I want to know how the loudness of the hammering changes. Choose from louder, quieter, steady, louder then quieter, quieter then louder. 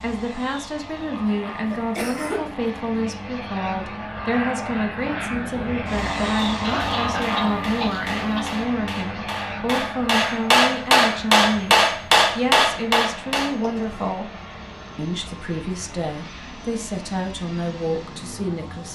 louder.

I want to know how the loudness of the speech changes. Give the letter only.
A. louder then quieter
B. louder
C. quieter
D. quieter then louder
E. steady
E.